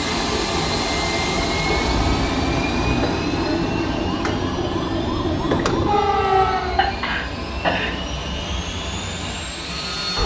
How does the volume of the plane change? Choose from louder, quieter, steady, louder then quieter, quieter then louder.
quieter.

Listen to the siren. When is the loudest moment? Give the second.
6 s.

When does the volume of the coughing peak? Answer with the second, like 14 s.
8 s.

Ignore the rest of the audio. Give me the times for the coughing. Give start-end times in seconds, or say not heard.
1.6-3.0, 6.8-8.2.